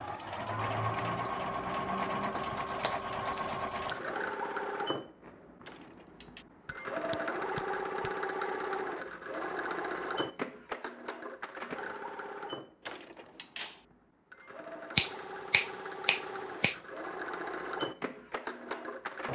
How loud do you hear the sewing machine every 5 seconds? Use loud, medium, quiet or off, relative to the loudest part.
loud, loud, medium, medium.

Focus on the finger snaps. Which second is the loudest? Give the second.
15 s.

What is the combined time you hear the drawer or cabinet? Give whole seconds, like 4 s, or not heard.
2 s.